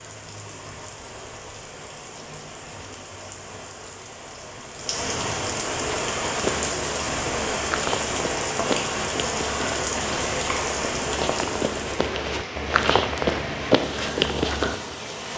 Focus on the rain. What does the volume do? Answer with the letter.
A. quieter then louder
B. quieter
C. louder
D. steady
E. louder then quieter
E.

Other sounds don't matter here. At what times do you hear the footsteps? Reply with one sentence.
The footsteps can be heard from 5.8 to 14.8 s.